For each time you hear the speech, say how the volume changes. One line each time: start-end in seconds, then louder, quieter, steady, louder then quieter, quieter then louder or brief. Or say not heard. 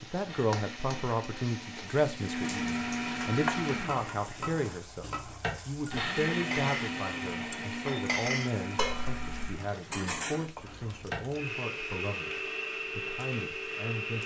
0.0-14.2 quieter.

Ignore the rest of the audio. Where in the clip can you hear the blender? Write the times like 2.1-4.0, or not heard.
0.2-14.2.